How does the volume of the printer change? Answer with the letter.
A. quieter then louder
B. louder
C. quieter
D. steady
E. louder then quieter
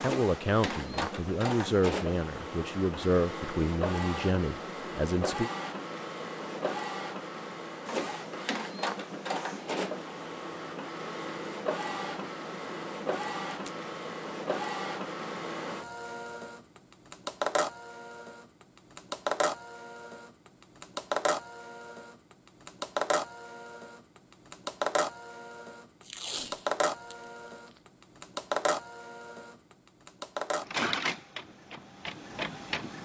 D.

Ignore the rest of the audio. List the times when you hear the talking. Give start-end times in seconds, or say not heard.
0.0-5.5.